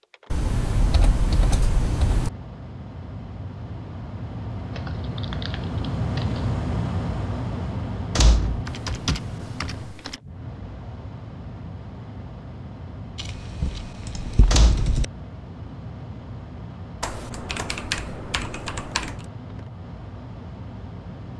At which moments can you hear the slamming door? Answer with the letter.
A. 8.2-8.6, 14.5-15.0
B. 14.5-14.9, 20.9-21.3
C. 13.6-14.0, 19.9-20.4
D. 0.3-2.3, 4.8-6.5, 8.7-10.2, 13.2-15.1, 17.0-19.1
A.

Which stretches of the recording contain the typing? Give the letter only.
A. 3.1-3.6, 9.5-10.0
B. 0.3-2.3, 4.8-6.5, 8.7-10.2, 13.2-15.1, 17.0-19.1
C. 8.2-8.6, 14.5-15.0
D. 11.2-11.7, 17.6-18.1
B.